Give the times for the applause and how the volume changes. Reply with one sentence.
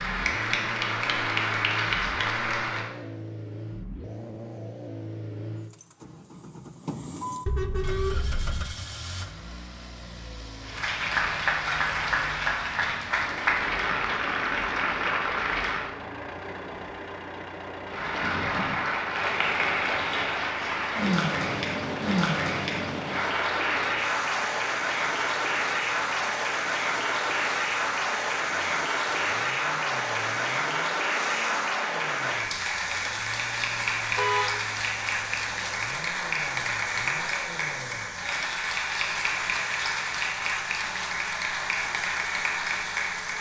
You can hear the applause briefly from 0.0 to 2.9 s; from 10.6 to 15.9 s, at a steady volume; and from 17.9 to 43.3 s, at a steady volume.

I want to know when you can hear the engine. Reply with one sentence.
You can hear the engine from 0.0 to 43.3 s.